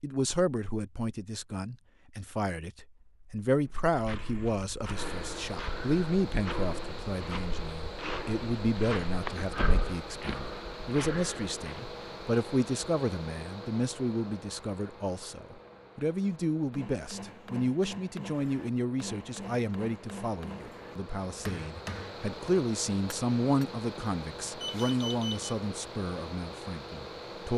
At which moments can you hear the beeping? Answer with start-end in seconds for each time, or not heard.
24.6-25.6.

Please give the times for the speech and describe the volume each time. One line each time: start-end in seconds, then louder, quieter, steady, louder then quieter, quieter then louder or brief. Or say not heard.
0.0-27.5 steady.